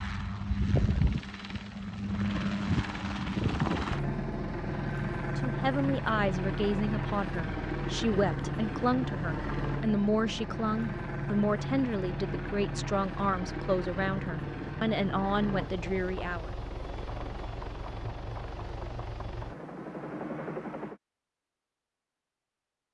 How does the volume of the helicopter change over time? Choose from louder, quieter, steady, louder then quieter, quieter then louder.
quieter.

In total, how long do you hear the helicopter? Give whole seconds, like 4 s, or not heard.
21 s.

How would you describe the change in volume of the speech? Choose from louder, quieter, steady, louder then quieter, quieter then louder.
steady.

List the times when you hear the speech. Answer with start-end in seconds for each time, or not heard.
5.2-16.5.